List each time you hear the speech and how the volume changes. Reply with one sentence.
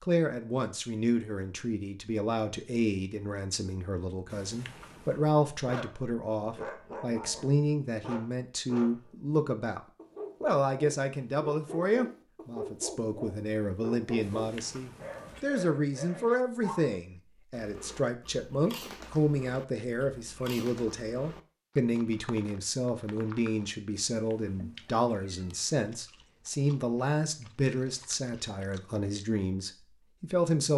You can hear the speech from 0.0 to 9.8 s, at a steady volume; and from 10.4 to 30.7 s, at a steady volume.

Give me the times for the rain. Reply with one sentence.
You can't hear the rain here.